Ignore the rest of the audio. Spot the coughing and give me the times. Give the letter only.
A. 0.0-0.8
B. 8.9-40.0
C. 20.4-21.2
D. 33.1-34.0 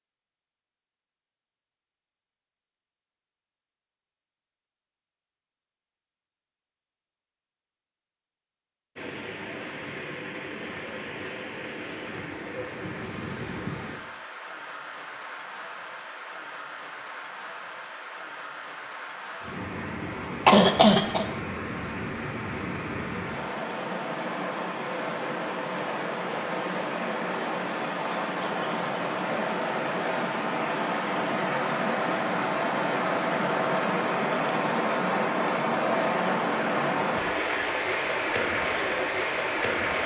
C.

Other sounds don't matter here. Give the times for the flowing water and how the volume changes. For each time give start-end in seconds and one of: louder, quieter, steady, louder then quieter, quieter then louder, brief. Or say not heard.
8.9-40.0 louder.